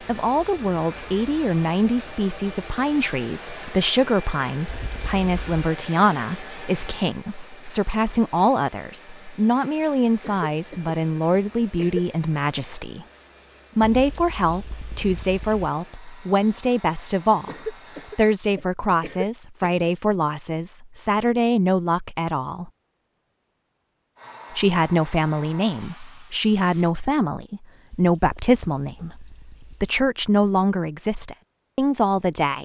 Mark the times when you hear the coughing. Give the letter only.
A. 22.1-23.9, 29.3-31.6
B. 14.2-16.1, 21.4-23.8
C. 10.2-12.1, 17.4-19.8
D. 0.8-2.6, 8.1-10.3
C.